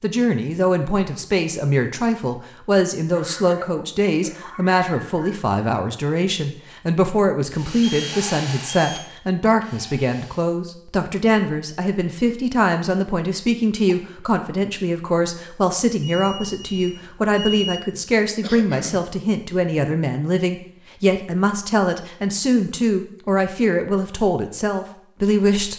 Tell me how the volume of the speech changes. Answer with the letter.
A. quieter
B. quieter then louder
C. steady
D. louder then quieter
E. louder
C.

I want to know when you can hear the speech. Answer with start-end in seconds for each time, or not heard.
0.0-25.7.